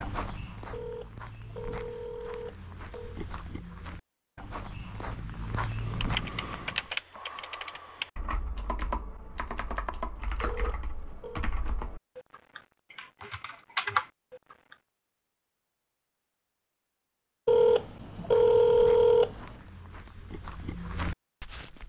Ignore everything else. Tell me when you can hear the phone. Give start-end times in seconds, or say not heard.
0.7-3.2, 10.4-11.5, 17.4-19.6.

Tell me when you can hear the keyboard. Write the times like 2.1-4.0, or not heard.
5.8-14.8.